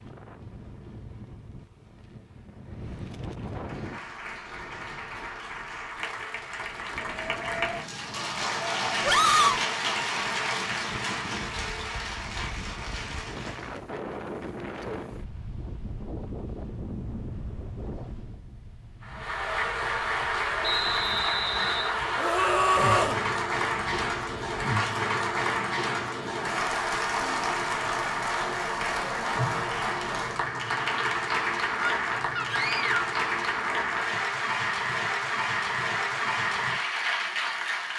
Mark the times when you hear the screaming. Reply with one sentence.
The screaming can be heard from 9.0 to 9.6 s, from 22.1 to 23.2 s and from 31.8 to 33.0 s.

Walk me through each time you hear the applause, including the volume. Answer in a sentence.
The applause can be heard from 3.5 to 13.8 s, getting louder then quieter; and from 19.0 to 37.9 s, at a steady volume.